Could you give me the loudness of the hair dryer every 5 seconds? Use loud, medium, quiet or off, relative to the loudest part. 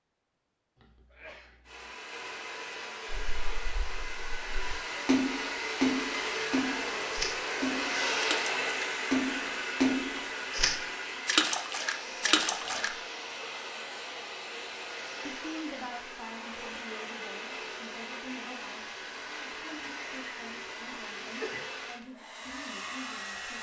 medium, loud, medium, medium, medium.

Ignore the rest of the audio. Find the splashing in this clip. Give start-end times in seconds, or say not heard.
3.1-12.9.